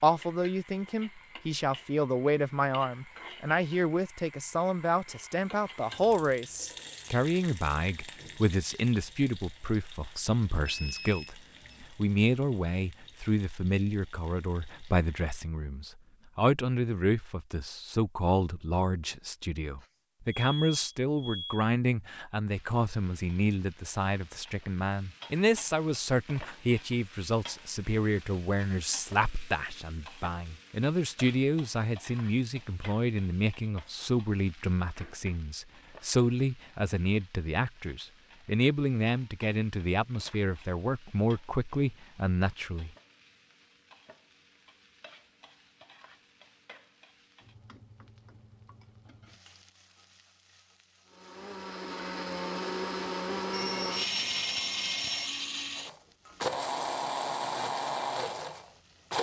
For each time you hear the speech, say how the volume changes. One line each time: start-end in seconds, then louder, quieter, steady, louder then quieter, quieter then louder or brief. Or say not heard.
0.0-42.9 steady.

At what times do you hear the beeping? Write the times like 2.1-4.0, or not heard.
10.6-11.8, 19.8-21.6, 53.5-55.5.